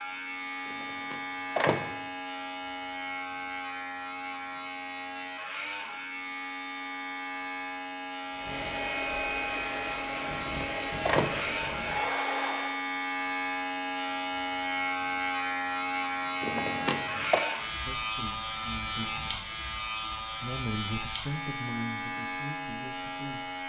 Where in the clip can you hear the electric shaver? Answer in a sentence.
You can hear the electric shaver from 0.0 to 23.6 s.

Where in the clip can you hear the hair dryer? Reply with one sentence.
You can hear the hair dryer from 8.3 to 12.8 s.